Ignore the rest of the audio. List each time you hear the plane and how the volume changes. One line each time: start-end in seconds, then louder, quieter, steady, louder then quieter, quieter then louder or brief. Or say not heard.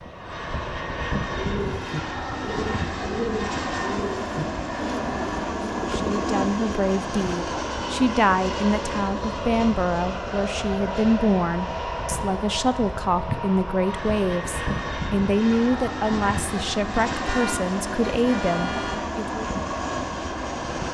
0.0-20.8 steady.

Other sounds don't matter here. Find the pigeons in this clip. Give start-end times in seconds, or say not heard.
1.2-6.8.